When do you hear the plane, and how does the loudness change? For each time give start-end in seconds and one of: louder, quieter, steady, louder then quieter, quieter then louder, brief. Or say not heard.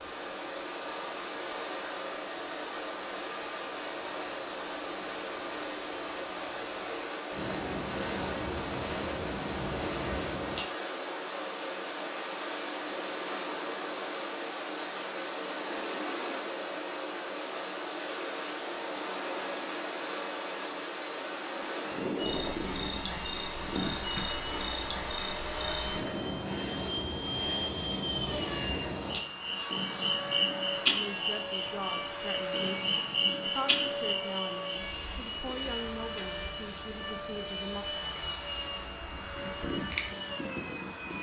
0.0-41.1 steady.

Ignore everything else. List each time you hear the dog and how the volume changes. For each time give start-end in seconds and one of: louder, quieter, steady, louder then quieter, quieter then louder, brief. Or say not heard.
not heard.